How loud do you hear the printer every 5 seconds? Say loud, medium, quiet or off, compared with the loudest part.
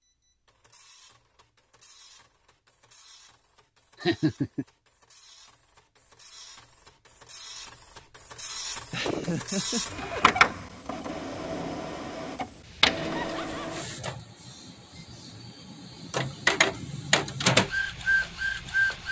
quiet, quiet, loud, loud.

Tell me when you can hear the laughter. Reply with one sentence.
The laughter can be heard from 4.0 to 4.7 s, from 8.9 to 10.6 s and from 13.2 to 13.8 s.